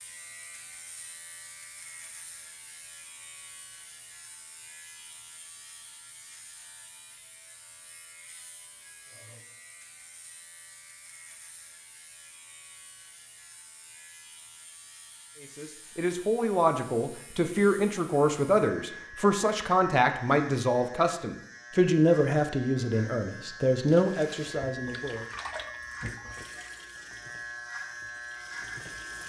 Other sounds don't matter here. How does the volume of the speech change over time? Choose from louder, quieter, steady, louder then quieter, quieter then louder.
steady.